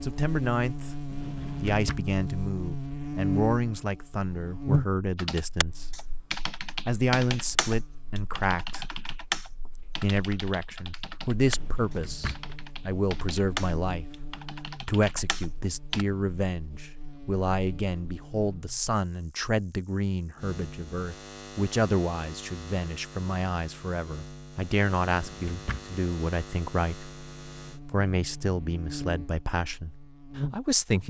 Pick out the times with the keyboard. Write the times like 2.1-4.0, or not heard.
5.2-16.1.